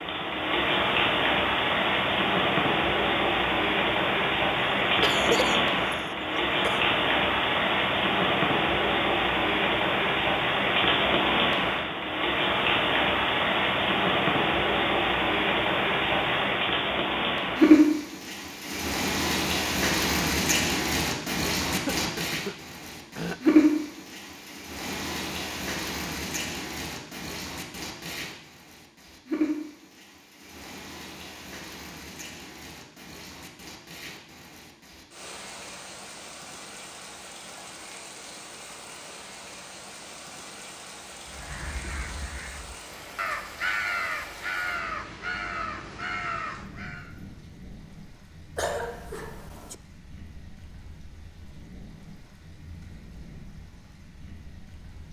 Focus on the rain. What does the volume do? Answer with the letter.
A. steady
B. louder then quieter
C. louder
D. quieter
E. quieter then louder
D.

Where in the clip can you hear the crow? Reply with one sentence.
The crow can be heard from 41.2 to 47.1 s.